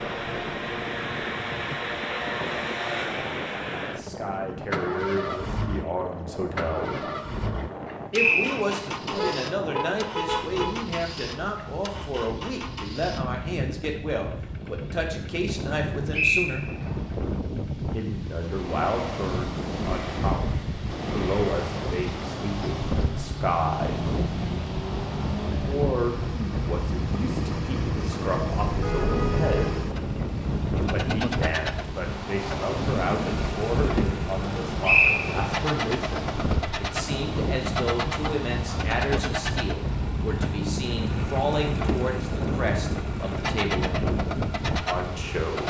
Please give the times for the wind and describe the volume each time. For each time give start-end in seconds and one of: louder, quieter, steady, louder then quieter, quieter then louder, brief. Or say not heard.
0.0-45.6 louder.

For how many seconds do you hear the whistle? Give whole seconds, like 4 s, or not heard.
2 s.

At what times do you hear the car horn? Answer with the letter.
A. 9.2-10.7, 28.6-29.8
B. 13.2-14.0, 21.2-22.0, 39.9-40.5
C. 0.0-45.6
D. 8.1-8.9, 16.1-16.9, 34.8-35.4
A.